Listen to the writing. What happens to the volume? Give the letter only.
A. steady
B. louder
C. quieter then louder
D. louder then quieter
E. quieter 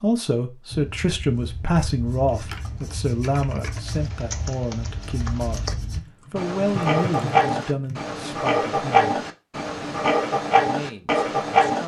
B.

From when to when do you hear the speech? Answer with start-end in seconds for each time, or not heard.
0.0-9.1, 10.6-11.8.